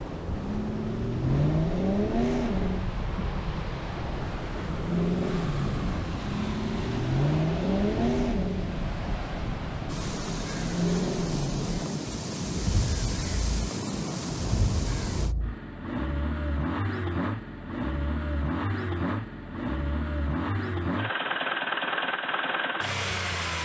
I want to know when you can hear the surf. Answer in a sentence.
The surf can be heard from 0.0 to 15.3 s.